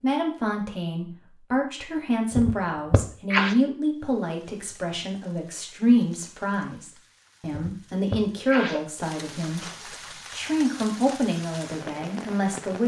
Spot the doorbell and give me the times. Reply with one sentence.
You can't hear the doorbell here.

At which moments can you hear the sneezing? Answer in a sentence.
You can hear the sneezing from 2.3 to 3.5 s and from 7.5 to 8.8 s.